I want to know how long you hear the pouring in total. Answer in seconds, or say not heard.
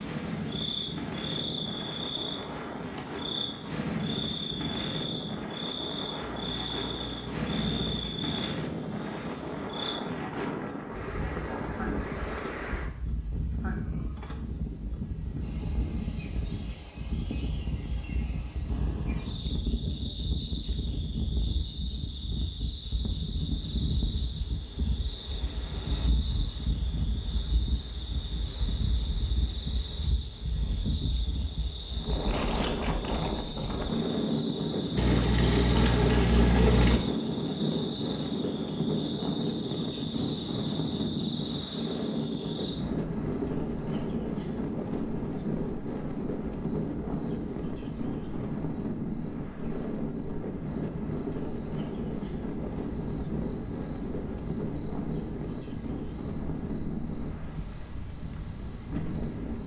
4 s.